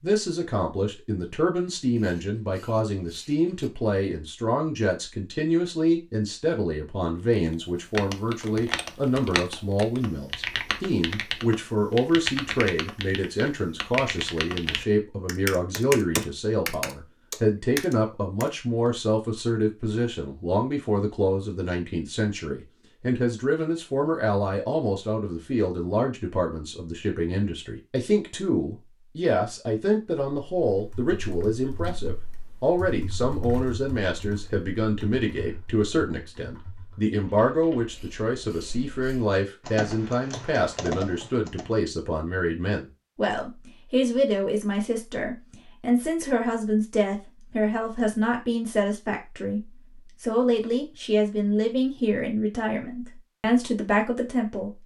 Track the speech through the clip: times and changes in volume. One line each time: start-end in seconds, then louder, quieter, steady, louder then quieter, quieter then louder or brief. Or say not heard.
0.0-54.7 steady.